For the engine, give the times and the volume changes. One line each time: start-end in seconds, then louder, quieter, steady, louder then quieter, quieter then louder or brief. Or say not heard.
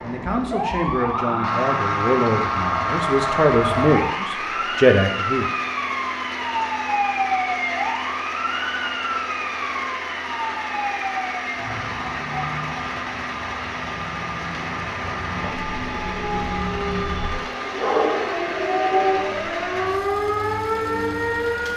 0.0-21.7 steady.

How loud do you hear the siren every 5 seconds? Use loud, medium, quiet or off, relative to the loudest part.
loud, loud, medium, loud, loud.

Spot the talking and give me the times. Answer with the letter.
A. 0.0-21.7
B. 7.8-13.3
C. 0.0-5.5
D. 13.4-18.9
C.